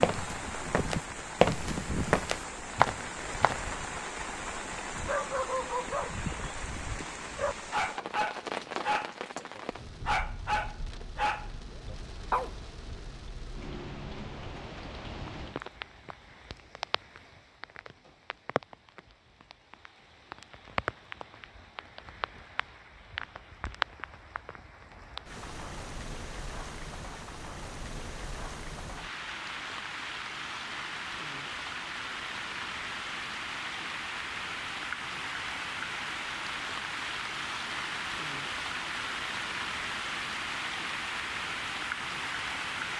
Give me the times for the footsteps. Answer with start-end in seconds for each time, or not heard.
0.0-3.6.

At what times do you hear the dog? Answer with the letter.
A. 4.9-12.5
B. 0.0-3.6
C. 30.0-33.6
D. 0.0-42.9
A.